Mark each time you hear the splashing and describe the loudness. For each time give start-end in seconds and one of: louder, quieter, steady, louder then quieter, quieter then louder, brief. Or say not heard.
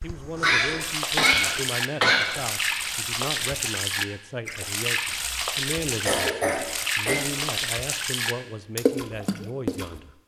0.8-10.0 steady.